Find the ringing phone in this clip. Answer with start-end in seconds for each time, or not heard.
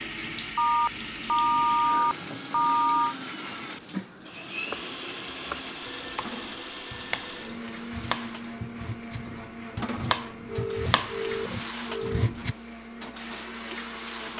0.6-3.1, 5.8-7.5, 10.4-12.3.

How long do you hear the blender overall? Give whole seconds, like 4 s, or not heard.
14 s.